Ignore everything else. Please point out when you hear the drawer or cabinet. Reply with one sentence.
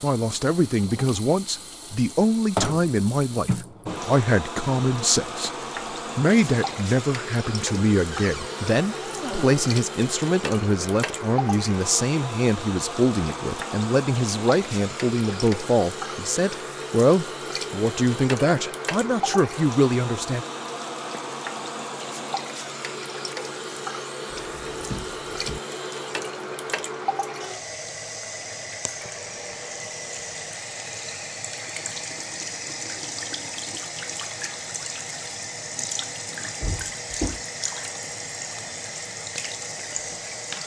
The drawer or cabinet can be heard from 8.1 to 9.7 s, from 24.3 to 25.6 s and from 36.6 to 37.4 s.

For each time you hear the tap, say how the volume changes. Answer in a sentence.
The tap can be heard from 0.0 to 40.6 s, at a steady volume.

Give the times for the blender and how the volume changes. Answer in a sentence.
You can't hear the blender here.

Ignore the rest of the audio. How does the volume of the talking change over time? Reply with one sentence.
The loudness of the talking stays about the same.